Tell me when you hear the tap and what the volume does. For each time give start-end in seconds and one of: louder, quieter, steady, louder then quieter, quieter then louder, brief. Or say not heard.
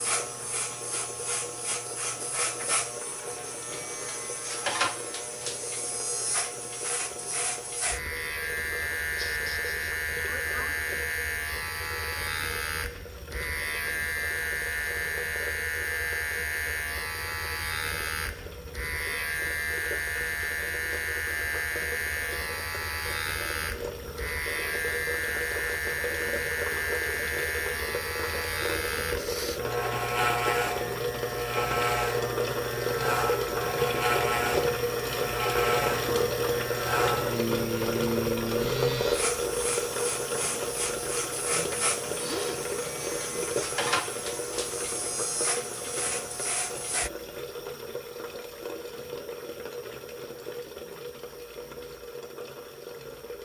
0.0-53.4 louder then quieter.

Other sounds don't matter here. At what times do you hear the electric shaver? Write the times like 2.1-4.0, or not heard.
0.0-47.1.